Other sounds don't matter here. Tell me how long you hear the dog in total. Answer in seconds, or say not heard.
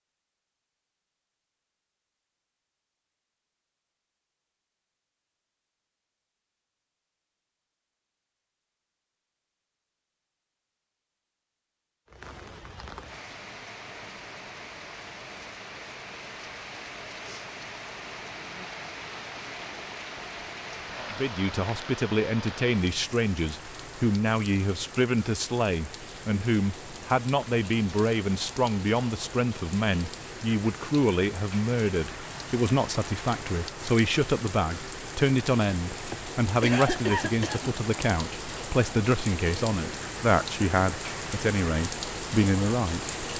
not heard.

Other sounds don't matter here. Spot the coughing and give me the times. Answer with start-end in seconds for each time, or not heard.
36.1-37.7.